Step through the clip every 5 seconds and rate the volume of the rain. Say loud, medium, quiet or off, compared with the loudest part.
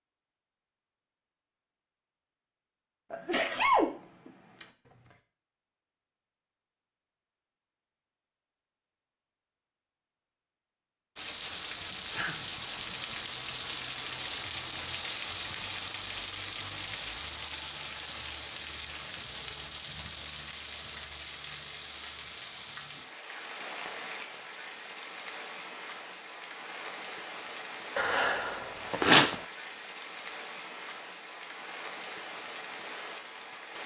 off, off, loud, loud, medium, medium, medium.